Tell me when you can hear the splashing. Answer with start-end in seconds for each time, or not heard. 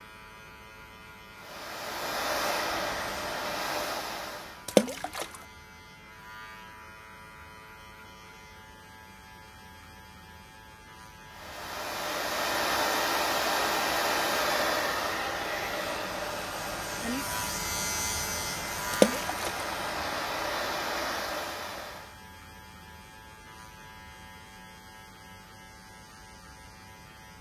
4.7-5.2, 18.9-19.5.